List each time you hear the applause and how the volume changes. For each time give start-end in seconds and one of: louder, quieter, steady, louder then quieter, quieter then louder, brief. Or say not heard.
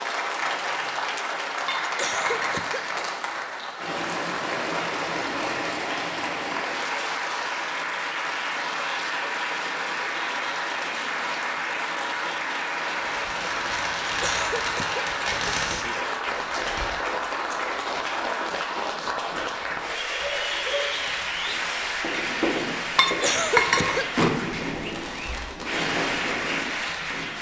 0.0-27.3 steady.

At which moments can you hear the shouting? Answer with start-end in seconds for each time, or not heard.
not heard.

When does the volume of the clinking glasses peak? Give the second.
24 s.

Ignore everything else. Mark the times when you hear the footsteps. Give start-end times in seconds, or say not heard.
not heard.